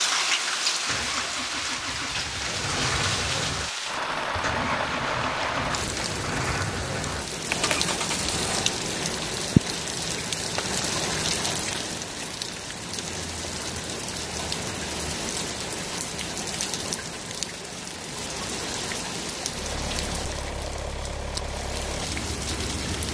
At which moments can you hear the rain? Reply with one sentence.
You can hear the rain from 0.0 to 23.0 s.